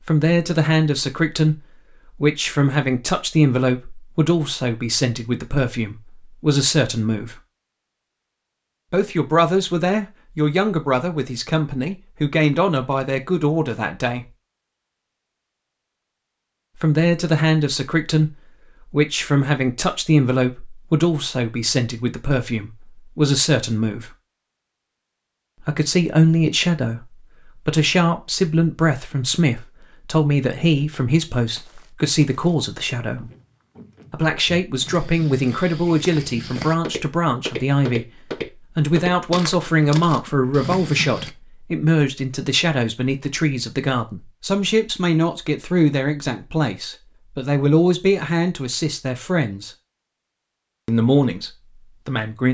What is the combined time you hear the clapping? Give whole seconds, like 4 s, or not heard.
not heard.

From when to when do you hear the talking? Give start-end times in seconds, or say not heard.
0.1-7.4, 8.9-14.2, 16.8-24.1, 25.6-33.3, 34.1-49.7, 50.9-52.4.